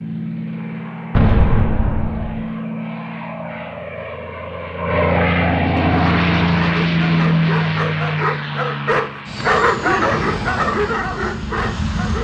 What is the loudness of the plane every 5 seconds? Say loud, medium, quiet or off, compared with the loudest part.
medium, loud, medium.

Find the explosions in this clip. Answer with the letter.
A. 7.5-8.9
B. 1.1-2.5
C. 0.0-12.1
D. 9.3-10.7
B.